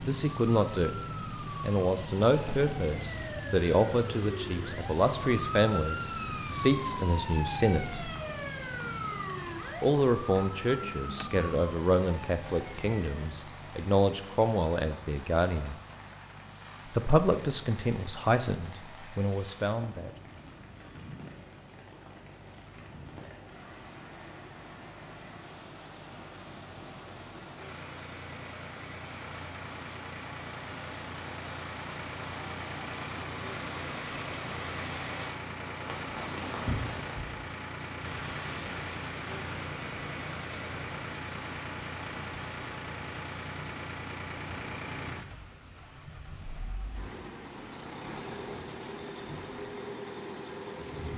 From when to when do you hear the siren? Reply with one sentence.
You can hear the siren from 0.1 to 13.4 s.